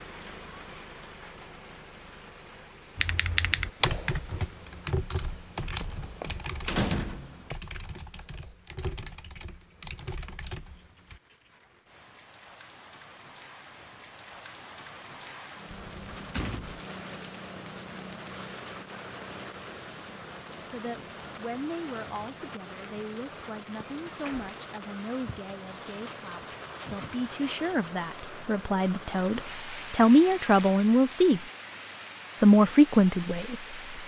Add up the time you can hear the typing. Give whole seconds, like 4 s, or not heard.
8 s.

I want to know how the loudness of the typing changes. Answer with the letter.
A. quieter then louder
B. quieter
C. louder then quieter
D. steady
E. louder
B.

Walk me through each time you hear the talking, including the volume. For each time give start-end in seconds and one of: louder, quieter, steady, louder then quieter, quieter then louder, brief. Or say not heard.
20.6-31.4 louder
32.4-34.0 brief.